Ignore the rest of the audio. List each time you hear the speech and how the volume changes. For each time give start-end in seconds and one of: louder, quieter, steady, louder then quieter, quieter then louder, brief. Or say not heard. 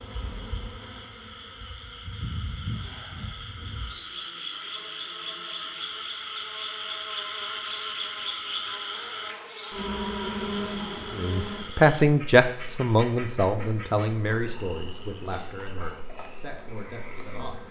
11.2-17.6 quieter.